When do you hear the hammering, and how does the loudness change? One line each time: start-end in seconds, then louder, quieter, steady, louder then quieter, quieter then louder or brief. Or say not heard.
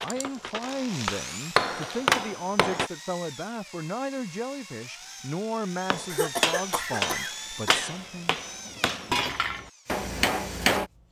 0.0-2.9 brief
5.9-10.8 quieter then louder.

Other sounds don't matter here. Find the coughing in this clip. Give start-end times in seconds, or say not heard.
6.1-7.9.